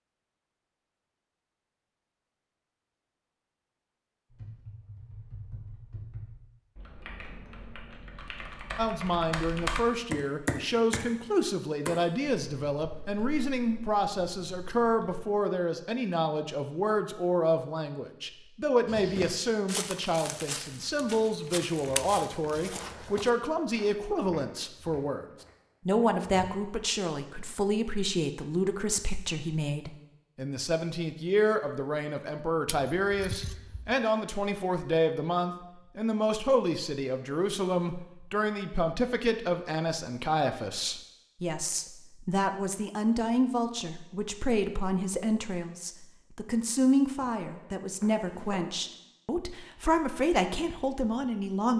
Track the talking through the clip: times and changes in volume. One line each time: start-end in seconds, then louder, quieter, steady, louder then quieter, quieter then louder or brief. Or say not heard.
8.8-25.2 steady
25.9-51.7 steady.